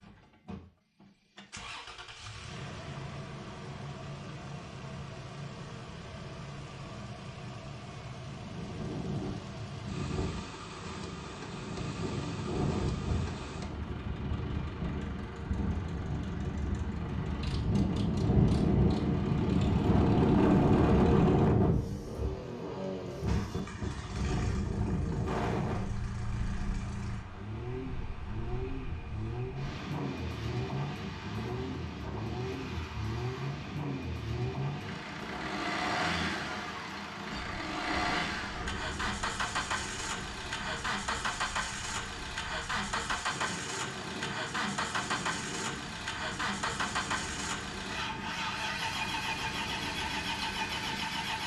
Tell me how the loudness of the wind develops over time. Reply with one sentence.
The volume of the wind goes up, then down.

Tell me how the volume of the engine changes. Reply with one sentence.
The volume of the engine goes up.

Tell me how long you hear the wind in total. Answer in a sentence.
You can hear the wind for 43 seconds altogether.